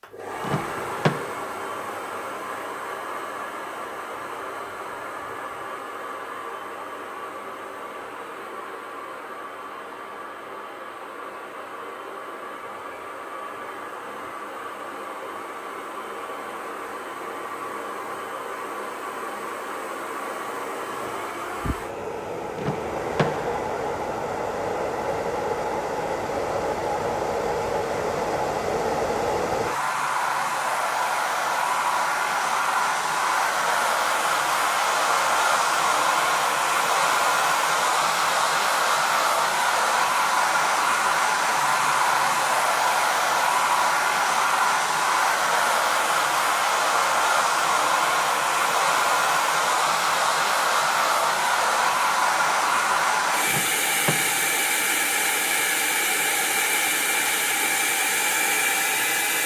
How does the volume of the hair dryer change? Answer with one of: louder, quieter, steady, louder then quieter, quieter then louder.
louder.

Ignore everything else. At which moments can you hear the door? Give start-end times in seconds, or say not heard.
0.4-1.2, 22.6-23.6, 53.5-54.5.